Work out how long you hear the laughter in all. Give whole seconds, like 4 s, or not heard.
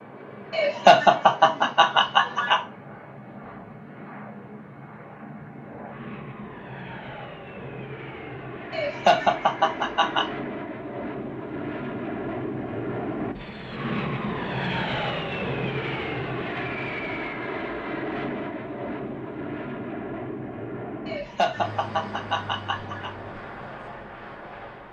6 s.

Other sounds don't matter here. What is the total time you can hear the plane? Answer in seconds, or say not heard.
25 s.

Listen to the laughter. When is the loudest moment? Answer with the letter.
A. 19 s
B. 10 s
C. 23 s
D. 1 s
D.